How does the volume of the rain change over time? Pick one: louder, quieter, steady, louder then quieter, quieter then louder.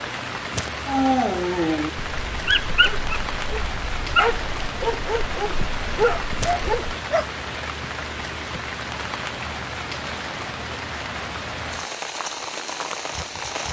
steady.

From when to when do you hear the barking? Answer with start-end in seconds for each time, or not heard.
0.8-7.2.